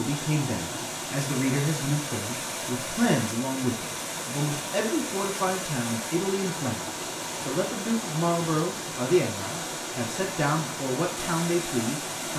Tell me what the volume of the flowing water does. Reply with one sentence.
The volume of the flowing water stays about the same.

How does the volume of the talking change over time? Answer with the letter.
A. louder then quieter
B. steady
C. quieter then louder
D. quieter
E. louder
B.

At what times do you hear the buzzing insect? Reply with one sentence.
The buzzing insect can't be heard in this clip.